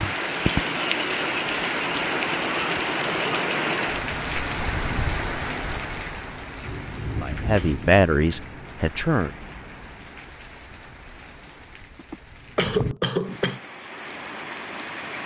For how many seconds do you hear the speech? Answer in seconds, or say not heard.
2 s.